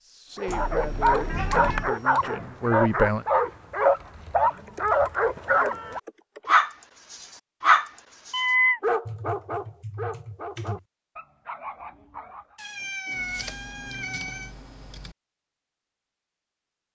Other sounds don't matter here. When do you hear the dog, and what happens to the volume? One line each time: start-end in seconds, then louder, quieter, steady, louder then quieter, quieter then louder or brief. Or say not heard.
0.3-12.6 quieter.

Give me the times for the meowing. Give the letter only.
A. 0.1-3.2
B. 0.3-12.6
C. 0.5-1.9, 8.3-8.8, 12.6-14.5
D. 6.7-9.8
C.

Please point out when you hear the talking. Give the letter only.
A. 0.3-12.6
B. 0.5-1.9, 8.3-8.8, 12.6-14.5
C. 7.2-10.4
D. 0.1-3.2
D.